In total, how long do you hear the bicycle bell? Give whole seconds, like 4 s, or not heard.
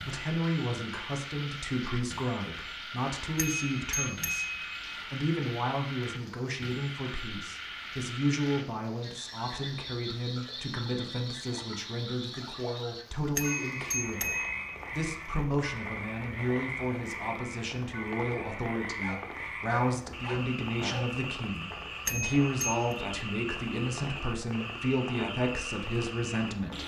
4 s.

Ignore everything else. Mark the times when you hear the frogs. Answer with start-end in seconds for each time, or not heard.
0.0-26.8.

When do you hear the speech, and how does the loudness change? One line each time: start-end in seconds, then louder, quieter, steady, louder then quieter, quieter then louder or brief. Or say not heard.
0.1-26.8 steady.